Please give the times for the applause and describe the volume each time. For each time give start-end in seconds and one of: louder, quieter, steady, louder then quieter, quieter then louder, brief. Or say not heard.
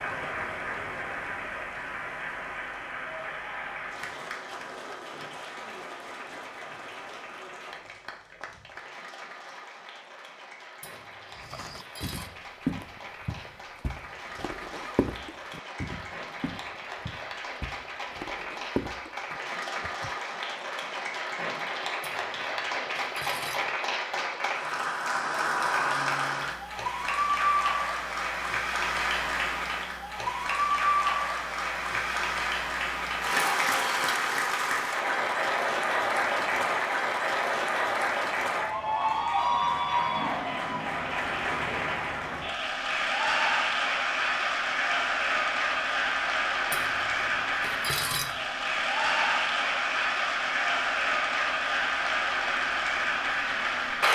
0.0-54.0 louder.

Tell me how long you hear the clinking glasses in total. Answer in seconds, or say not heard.
5 s.